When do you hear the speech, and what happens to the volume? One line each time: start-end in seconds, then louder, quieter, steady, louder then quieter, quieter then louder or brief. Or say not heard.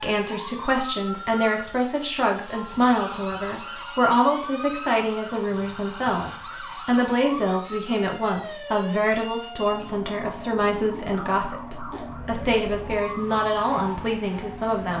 0.0-14.9 steady.